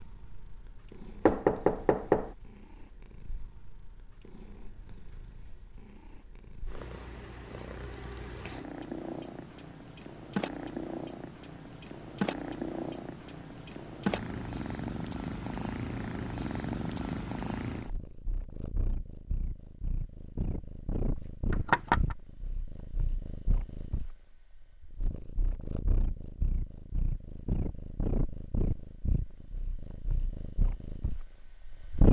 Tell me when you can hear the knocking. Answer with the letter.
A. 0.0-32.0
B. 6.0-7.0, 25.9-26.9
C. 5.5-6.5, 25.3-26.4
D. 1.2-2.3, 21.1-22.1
D.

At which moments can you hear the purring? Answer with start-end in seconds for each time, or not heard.
0.0-32.0.